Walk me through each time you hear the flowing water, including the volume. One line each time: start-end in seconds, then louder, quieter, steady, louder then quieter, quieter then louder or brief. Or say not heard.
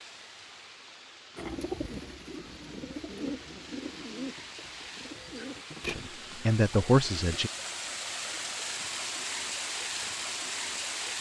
0.0-11.1 louder.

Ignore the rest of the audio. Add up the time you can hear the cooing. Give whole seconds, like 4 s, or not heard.
6 s.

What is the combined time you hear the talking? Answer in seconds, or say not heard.
2 s.